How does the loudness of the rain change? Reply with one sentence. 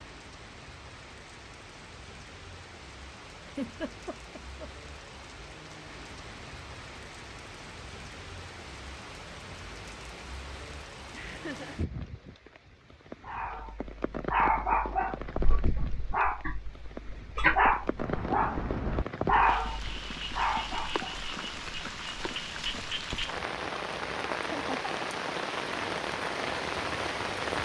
The loudness of the rain goes up.